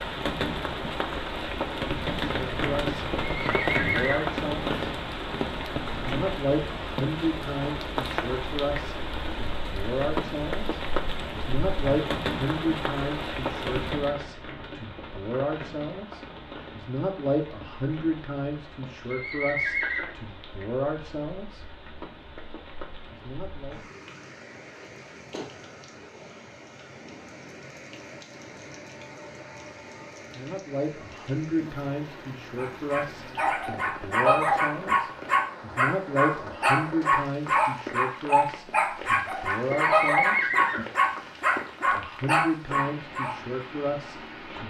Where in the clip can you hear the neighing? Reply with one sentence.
The neighing can be heard from 3.5 to 4.3 s, from 19.1 to 20.1 s and from 39.8 to 40.9 s.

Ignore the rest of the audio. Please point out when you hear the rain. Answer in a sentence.
You can hear the rain from 0.0 to 44.6 s.